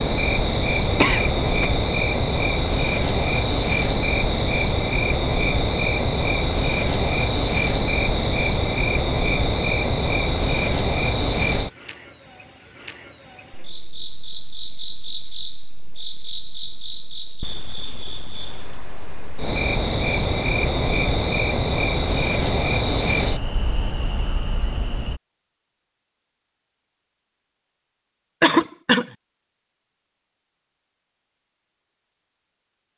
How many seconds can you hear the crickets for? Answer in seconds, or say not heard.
25 s.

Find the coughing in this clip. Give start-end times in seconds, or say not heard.
0.9-1.7, 28.4-29.1.